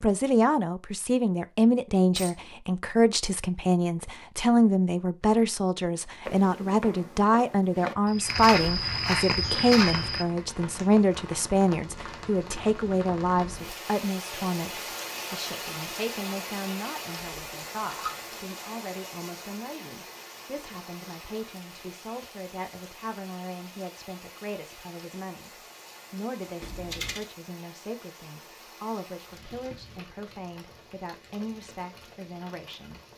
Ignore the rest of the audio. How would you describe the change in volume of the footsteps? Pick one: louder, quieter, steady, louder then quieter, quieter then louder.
louder.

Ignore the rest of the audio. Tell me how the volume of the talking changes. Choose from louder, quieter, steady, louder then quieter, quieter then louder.
quieter.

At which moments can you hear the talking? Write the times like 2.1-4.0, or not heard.
0.0-33.0.